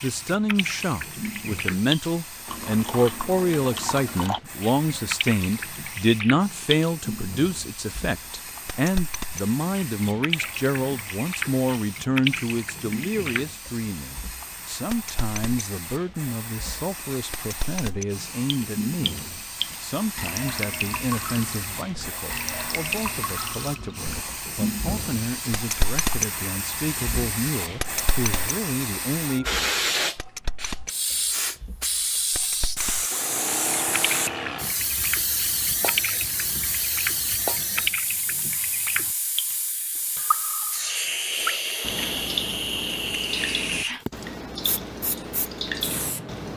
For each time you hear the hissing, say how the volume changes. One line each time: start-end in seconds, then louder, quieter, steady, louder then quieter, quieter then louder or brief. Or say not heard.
0.0-46.5 louder.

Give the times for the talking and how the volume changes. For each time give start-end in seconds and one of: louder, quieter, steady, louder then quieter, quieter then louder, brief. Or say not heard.
0.0-29.4 quieter.